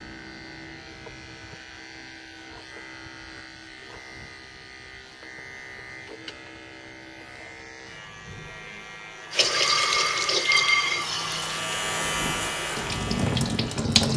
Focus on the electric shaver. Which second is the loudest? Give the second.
12 s.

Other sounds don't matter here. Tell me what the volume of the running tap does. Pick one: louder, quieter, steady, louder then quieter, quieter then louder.
quieter then louder.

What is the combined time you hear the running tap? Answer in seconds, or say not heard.
5 s.